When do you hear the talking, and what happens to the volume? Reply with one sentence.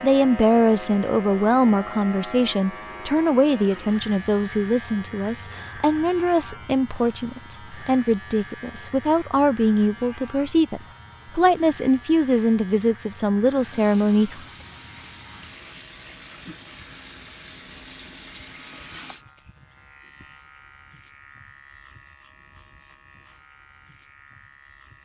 The talking can be heard from 0.0 to 14.4 s, at a steady volume.